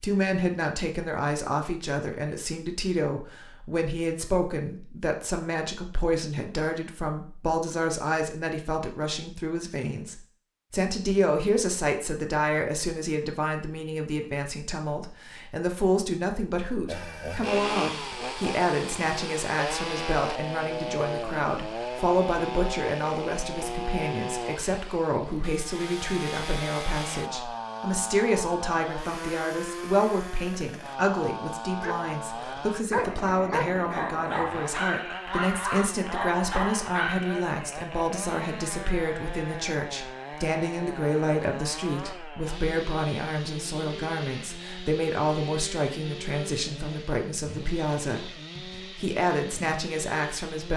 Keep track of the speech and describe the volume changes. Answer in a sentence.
The volume of the speech stays about the same.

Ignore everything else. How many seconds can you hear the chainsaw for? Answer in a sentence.
You can hear the chainsaw for 34 seconds altogether.